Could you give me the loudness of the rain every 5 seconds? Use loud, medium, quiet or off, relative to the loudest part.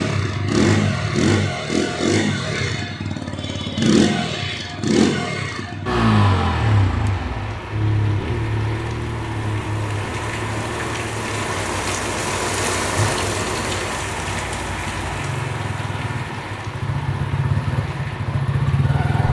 off, medium, loud, medium.